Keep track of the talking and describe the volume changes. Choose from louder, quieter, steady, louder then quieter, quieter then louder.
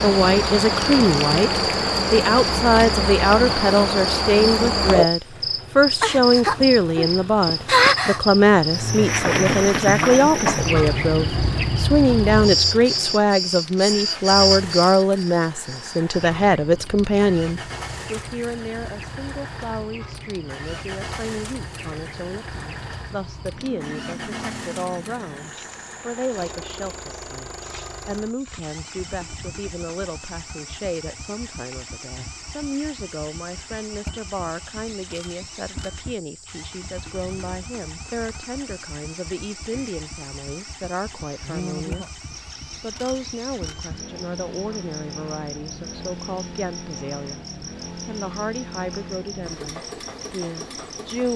quieter.